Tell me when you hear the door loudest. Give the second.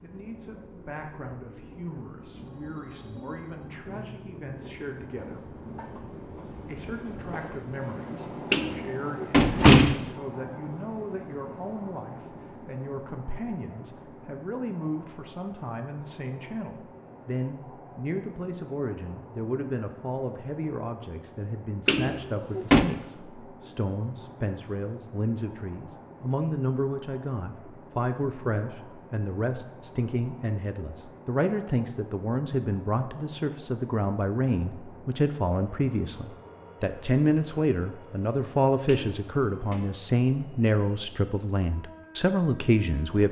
10 s.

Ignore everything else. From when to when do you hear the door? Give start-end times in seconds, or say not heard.
8.5-10.1, 21.9-22.9, 38.9-39.8.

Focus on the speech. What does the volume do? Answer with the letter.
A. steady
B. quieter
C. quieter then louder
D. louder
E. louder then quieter
D.